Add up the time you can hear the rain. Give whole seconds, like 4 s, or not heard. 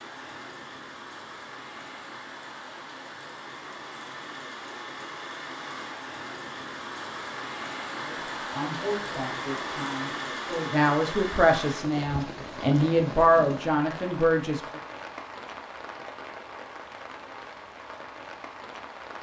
19 s.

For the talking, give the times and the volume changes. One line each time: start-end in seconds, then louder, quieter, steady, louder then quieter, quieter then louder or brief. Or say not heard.
8.0-14.8 louder.